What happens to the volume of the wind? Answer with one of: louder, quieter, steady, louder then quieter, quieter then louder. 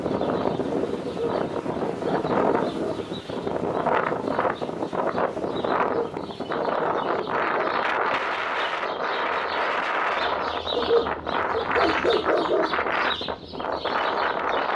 steady.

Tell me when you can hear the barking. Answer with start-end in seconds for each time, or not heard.
1.1-3.0, 5.8-7.8, 10.8-12.8.